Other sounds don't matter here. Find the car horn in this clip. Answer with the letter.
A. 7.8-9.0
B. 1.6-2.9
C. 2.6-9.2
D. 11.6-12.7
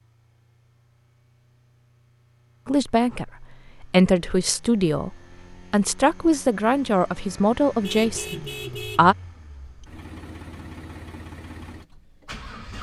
A.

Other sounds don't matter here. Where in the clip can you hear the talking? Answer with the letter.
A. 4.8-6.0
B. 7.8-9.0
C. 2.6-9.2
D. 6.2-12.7
C.